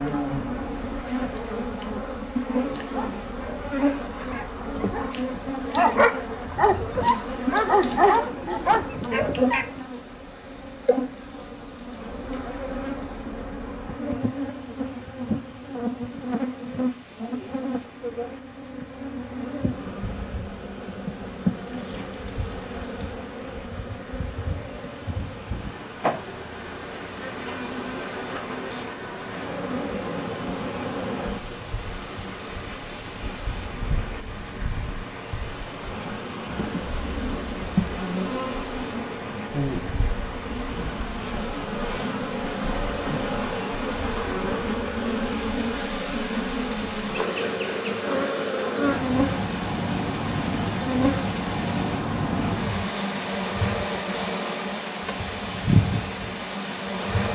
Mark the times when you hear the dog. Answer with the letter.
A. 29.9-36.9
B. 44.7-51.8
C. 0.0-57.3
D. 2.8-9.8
D.